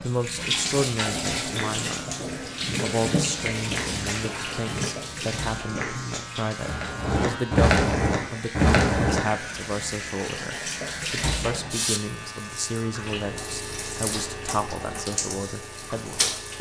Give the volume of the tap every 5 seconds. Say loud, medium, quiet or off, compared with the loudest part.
loud, medium, loud, loud.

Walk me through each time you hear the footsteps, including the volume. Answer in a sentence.
The footsteps can be heard from 1.4 to 9.2 s, getting louder.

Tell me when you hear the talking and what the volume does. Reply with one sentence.
You can hear the talking briefly from 0.0 to 2.2 s; and from 2.8 to 16.5 s, at a steady volume.